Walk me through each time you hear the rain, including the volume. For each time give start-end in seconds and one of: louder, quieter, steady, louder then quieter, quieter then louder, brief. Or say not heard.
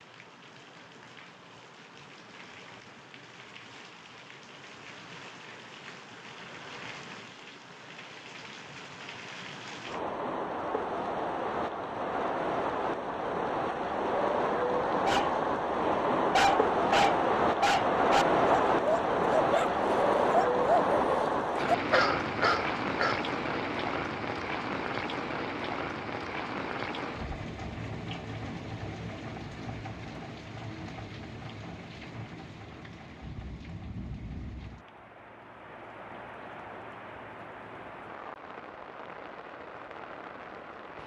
0.0-41.0 louder then quieter.